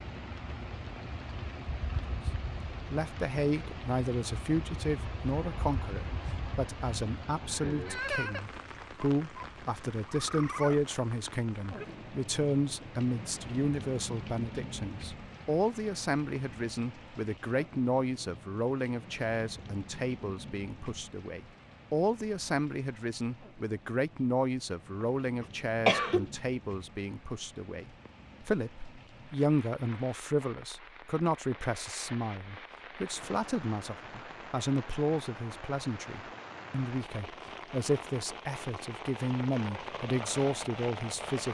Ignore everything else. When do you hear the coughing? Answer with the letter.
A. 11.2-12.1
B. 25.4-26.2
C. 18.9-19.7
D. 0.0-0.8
B.